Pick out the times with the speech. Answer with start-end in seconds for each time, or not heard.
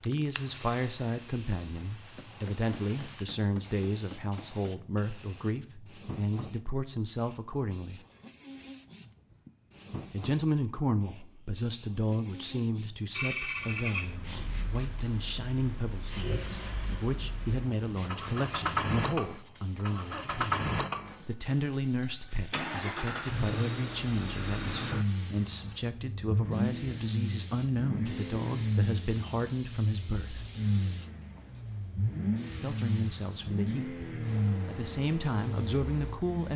0.0-8.0, 10.1-20.6, 21.2-30.5, 32.6-36.5.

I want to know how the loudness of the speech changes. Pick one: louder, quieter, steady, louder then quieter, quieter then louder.
steady.